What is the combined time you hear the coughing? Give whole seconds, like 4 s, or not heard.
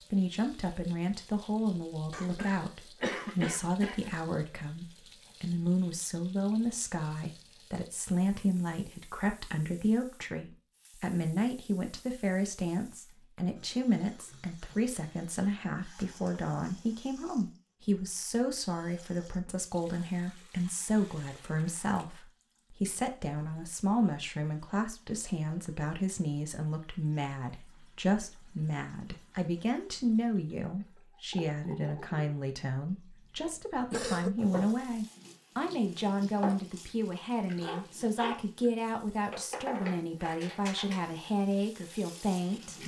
3 s.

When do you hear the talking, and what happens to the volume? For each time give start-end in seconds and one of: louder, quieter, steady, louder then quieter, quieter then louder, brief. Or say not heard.
0.1-42.8 steady.